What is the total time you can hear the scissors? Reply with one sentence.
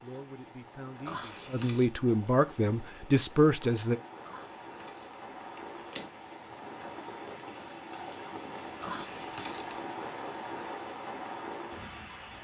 The scissors can be heard for 4 seconds in total.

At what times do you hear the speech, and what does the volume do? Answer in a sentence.
The speech can be heard from 0.0 to 4.0 s, getting louder.